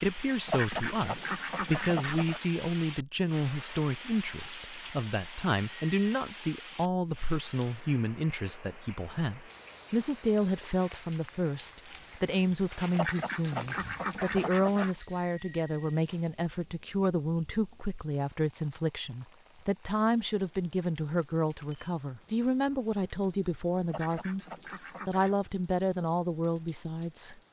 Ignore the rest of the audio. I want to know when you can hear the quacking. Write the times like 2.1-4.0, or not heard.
0.5-2.4, 12.9-14.9, 23.9-25.4.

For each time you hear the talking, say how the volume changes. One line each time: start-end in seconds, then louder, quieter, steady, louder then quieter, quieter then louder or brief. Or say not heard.
0.0-24.4 steady
25.1-27.4 brief.